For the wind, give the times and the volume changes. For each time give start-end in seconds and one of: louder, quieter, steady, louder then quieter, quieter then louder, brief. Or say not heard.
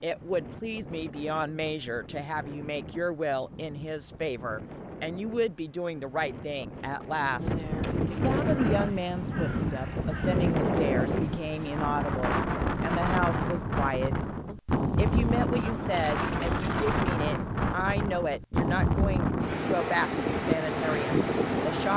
0.0-21.9 louder.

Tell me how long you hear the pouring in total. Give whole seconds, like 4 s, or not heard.
2 s.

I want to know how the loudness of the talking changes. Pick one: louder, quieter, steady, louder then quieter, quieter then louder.
steady.